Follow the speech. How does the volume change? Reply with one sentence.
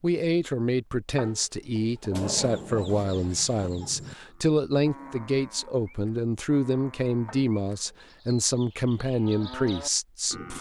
The volume of the speech stays about the same.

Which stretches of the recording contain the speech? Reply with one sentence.
The speech can be heard from 0.0 to 10.5 s.